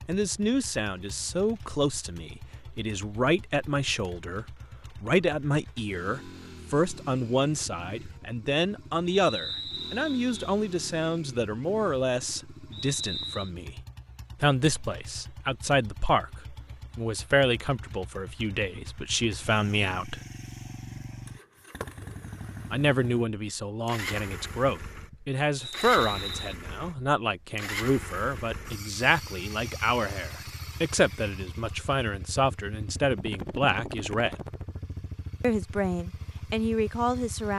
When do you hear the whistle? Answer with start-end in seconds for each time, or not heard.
9.1-10.3, 12.7-13.5, 25.6-26.6.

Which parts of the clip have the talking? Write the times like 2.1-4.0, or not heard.
0.1-13.8, 14.4-20.2, 22.7-34.4, 35.4-37.5.